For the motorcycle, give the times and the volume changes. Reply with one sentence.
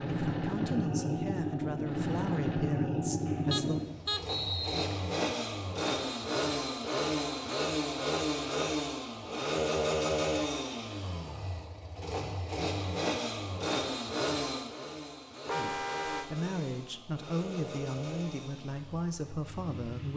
You can hear the motorcycle from 0.0 to 20.1 s, getting quieter.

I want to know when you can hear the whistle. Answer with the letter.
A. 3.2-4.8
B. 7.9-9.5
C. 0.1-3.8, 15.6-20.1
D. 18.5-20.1
A.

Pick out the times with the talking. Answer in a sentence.
You can hear the talking from 0.1 to 3.8 s and from 15.6 to 20.1 s.